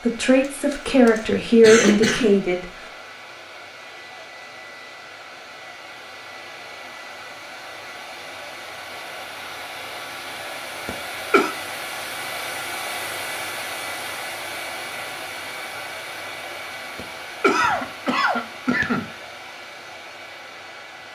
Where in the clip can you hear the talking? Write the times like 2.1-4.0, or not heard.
0.0-2.6.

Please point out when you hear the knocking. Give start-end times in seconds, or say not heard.
not heard.